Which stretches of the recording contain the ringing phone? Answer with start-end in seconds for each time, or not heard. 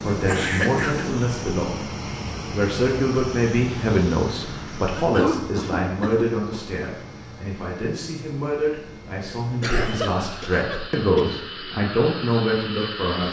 not heard.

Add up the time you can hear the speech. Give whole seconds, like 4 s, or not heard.
13 s.